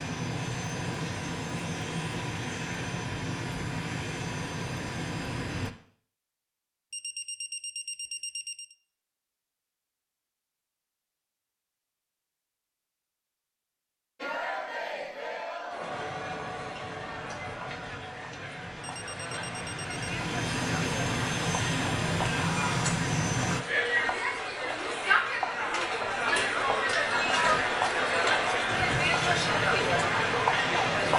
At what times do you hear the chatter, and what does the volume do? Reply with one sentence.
You can hear the chatter from 14.2 to 31.1 s, getting louder.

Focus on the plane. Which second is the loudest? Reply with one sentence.
The loudest moment of the plane is at 23 seconds.